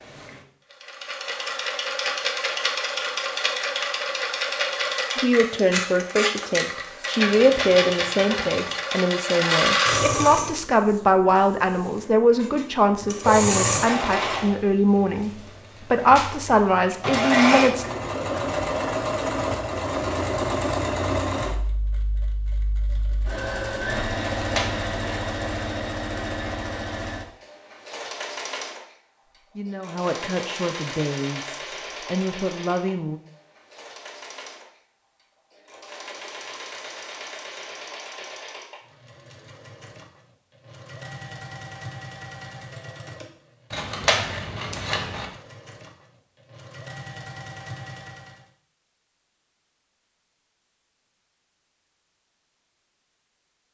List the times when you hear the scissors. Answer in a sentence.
The scissors can be heard from 7.2 to 8.8 s, from 24.2 to 25.1 s and from 43.7 to 45.2 s.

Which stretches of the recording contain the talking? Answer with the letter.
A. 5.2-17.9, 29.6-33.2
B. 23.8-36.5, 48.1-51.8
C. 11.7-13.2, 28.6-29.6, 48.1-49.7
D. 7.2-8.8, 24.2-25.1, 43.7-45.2
A.